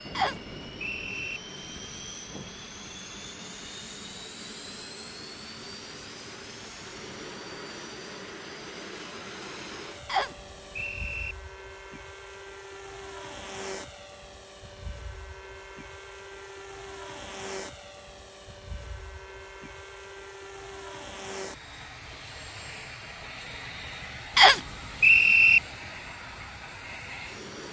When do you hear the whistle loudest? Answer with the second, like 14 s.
25 s.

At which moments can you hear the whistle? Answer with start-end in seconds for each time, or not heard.
0.1-1.4, 10.1-11.3, 24.4-25.6.